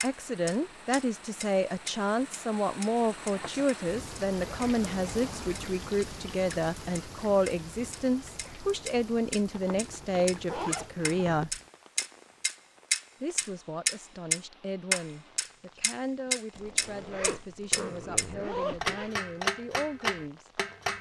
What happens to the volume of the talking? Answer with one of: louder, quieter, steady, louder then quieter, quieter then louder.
quieter.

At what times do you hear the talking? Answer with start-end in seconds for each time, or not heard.
0.0-11.6, 13.2-20.6.